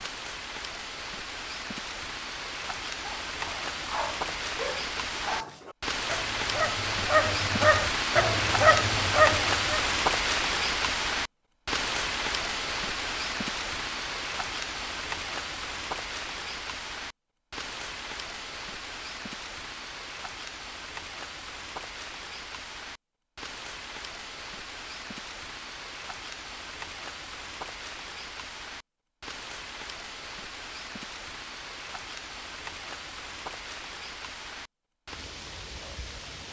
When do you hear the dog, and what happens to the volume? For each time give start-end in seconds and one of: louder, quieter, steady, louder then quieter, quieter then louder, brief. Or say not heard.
3.0-9.8 louder.